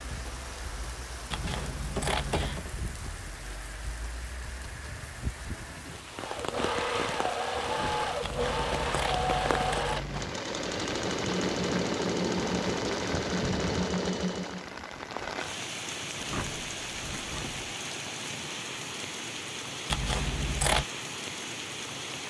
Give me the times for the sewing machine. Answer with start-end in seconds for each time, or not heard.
6.1-14.8.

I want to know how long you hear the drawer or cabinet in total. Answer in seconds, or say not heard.
2 s.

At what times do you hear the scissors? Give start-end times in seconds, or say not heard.
1.3-2.6, 8.2-10.3, 19.9-20.9.